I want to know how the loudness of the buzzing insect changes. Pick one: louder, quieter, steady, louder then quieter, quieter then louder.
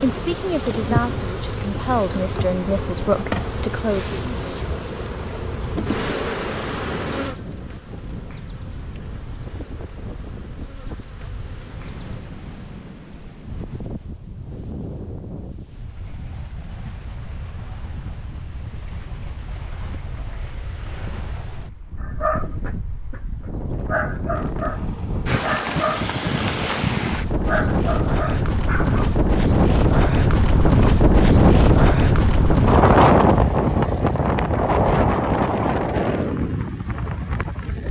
quieter.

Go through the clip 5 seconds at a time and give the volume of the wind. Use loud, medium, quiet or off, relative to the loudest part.
quiet, quiet, quiet, quiet, quiet, medium, loud, medium.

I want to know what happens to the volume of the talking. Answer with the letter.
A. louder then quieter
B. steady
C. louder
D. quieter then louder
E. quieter
D.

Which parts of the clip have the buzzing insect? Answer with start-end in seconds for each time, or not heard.
0.0-12.2.